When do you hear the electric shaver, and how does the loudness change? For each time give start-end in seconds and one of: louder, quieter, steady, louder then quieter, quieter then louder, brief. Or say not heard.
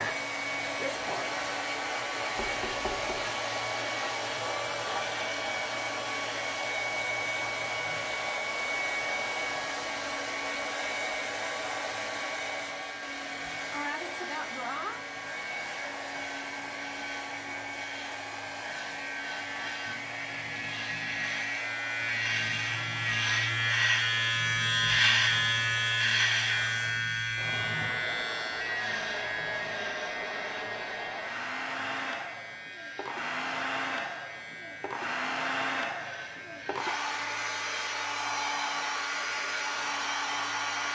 0.0-40.8 louder then quieter.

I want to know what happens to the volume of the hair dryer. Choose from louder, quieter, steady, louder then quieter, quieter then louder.
quieter then louder.